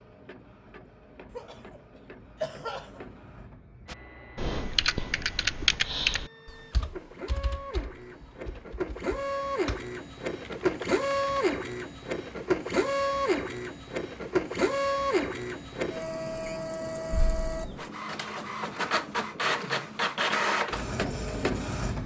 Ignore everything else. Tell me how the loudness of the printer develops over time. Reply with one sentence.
The volume of the printer goes up.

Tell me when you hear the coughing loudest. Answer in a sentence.
The volume of the coughing peaks at 3 seconds.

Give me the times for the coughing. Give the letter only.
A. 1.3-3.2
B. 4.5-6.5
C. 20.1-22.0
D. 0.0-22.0
A.